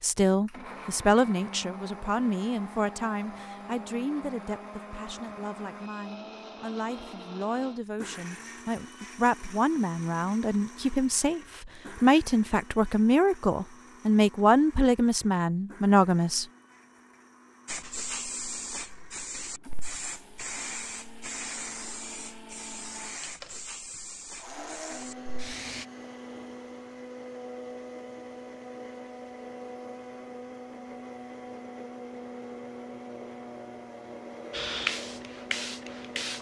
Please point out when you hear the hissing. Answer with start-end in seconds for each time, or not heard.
17.6-25.9, 34.5-36.3.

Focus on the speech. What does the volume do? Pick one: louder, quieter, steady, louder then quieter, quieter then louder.
quieter then louder.